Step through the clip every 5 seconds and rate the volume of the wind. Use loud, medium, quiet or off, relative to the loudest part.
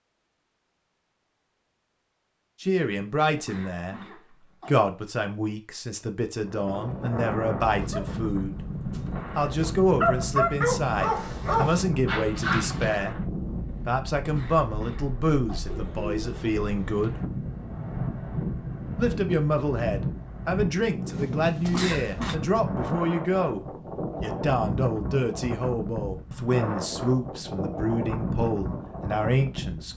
off, loud, loud, loud, loud, loud.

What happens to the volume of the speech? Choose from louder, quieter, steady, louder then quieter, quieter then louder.
steady.